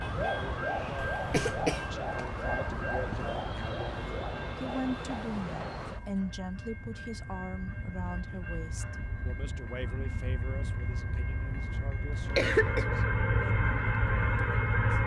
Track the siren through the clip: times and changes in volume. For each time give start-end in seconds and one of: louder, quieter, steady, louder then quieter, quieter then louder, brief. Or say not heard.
0.0-6.2 steady.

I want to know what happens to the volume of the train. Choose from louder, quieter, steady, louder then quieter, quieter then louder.
quieter then louder.